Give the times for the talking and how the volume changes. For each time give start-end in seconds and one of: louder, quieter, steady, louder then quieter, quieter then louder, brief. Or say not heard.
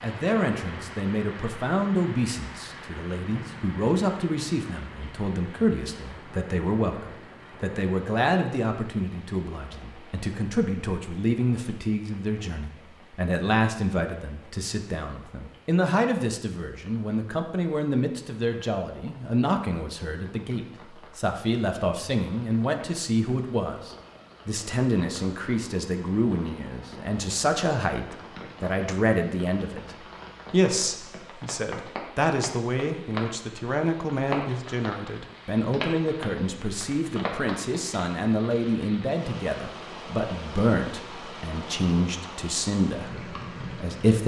0.0-44.2 steady.